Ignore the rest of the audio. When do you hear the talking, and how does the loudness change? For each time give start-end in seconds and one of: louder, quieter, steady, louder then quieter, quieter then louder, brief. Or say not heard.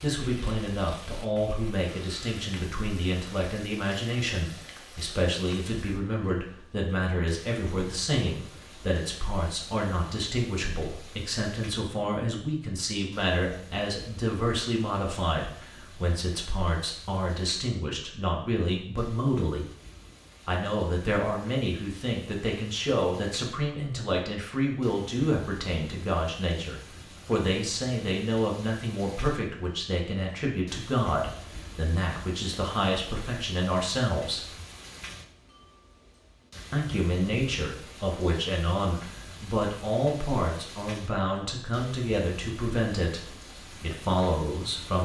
0.0-19.6 steady
20.4-34.5 steady
36.7-44.9 steady.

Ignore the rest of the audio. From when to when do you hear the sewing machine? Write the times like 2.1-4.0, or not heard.
not heard.